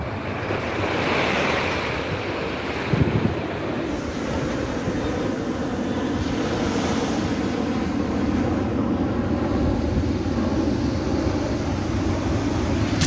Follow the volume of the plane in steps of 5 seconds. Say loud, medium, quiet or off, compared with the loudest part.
medium, loud, loud.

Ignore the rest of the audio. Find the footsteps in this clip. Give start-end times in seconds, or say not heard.
not heard.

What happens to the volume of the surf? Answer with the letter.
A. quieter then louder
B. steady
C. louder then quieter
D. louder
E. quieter
E.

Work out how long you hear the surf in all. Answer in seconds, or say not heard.
13 s.